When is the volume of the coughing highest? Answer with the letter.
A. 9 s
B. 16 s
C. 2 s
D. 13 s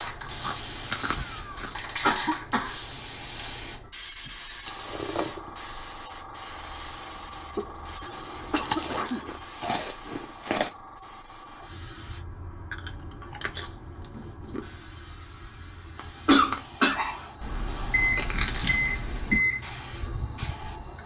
B.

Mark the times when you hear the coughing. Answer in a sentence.
You can hear the coughing from 1.2 to 2.8 s, from 7.5 to 9.2 s and from 15.9 to 17.2 s.